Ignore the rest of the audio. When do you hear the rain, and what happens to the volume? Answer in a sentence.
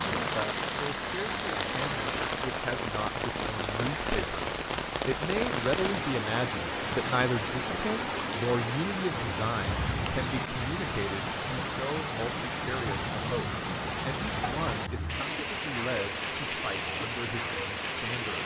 The rain can be heard from 0.0 to 18.4 s, at a steady volume.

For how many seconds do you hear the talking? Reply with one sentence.
You can hear the talking for 18 seconds altogether.